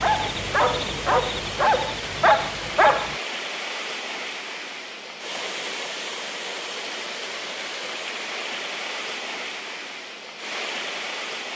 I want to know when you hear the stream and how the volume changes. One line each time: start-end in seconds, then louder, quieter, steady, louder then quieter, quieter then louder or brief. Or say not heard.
0.0-11.5 steady.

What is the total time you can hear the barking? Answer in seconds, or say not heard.
3 s.